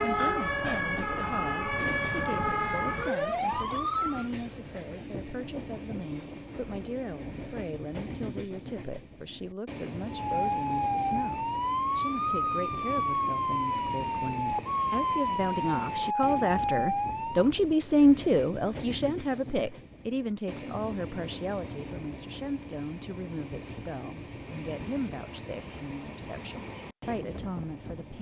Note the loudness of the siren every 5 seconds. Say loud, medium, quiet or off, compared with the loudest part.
loud, off, loud, loud, off, off.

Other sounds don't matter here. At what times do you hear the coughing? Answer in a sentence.
The coughing can't be heard in this clip.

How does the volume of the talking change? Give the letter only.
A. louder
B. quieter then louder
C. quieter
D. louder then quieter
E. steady
D.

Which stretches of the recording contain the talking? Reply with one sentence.
The talking can be heard from 0.0 to 28.1 s.